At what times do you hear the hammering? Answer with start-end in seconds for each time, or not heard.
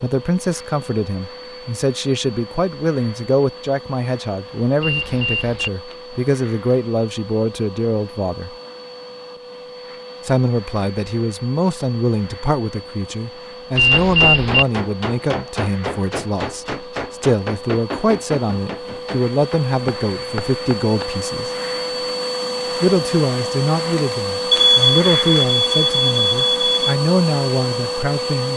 13.9-21.1.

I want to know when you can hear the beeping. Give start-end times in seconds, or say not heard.
4.8-5.7, 13.8-14.7, 24.5-26.9.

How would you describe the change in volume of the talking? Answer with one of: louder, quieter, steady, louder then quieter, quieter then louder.
steady.